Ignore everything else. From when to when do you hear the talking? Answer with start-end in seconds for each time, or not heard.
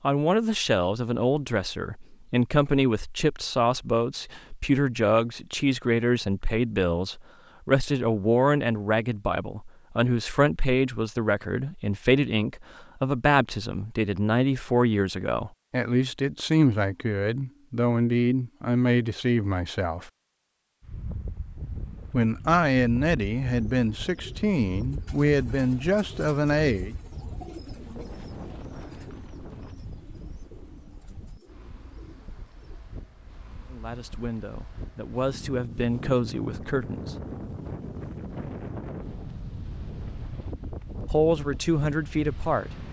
0.0-20.1, 22.1-26.9, 33.7-37.1, 41.0-42.8.